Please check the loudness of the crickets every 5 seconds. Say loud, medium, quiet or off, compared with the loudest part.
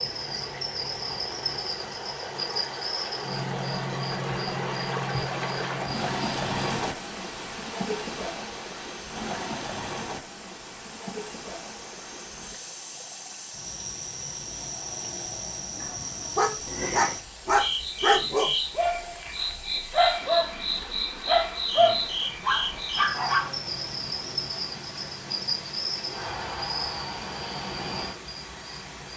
loud, medium, medium, loud, loud, loud.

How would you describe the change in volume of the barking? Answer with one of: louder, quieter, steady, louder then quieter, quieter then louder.
steady.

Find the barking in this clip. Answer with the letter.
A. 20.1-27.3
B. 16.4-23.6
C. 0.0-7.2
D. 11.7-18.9
B.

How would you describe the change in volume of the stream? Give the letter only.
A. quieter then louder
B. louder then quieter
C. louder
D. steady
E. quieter
E.